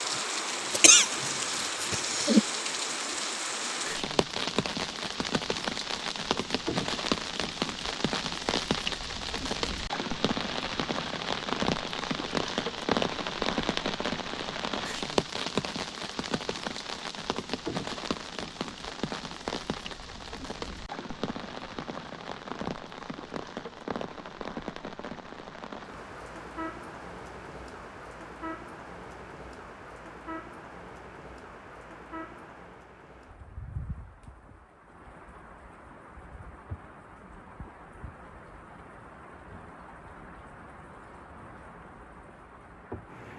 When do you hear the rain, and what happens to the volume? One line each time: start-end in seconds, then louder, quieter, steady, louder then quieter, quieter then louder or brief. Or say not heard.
0.0-43.3 quieter.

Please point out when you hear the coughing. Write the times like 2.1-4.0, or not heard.
0.7-2.5.